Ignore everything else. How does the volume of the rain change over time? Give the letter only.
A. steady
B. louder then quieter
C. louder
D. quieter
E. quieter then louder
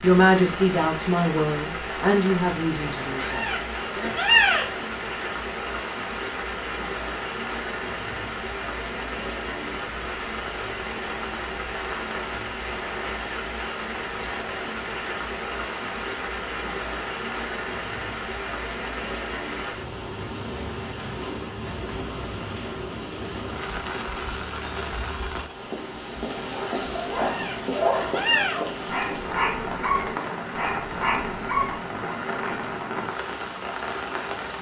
A.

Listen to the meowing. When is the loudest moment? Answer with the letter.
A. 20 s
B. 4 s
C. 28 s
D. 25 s
B.